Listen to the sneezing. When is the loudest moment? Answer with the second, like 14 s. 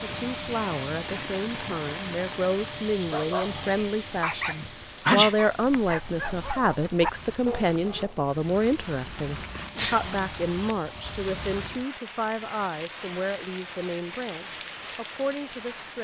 5 s.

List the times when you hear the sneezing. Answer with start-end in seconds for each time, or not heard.
4.6-5.8, 9.8-10.8.